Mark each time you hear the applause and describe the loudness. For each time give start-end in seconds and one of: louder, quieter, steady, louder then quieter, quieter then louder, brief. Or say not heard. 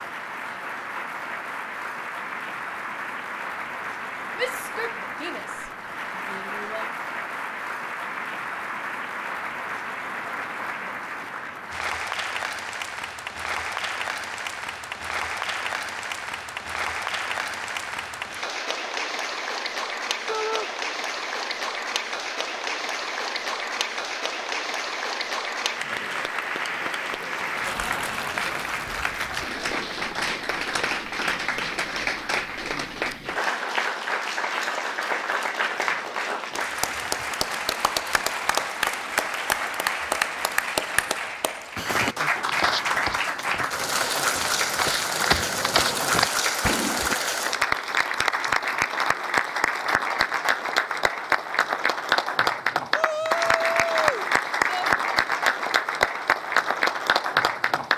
0.0-57.9 louder.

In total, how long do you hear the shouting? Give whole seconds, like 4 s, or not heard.
5 s.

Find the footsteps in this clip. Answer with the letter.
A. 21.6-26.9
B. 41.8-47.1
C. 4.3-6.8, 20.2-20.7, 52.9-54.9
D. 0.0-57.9
B.